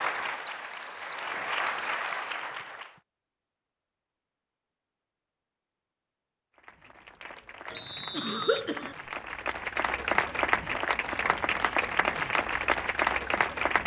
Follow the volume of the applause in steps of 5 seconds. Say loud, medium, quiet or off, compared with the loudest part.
medium, medium, loud.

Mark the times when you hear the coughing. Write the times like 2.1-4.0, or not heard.
7.7-8.9.